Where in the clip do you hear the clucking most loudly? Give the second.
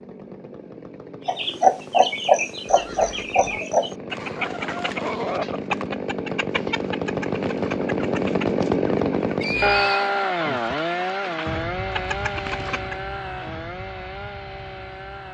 2 s.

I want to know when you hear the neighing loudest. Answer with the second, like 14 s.
10 s.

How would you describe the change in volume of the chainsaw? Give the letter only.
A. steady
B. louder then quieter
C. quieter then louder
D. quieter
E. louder
B.